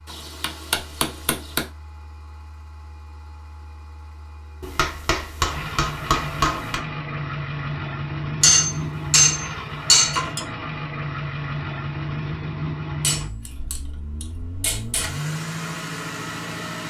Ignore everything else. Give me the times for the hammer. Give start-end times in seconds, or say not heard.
0.1-1.6, 4.6-6.8, 8.4-10.4, 13.0-15.1.